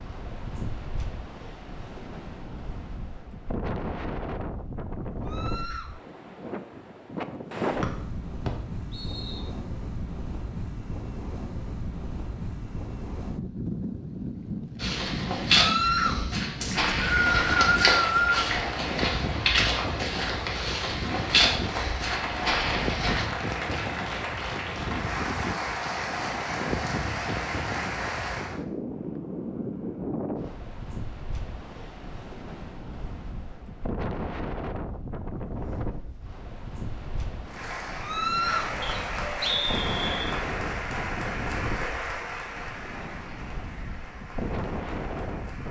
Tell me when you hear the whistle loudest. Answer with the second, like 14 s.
18 s.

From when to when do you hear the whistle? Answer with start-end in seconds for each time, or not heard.
8.4-9.4, 16.6-18.5, 38.8-40.4.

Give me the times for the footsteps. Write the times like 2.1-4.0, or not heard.
14.8-23.2.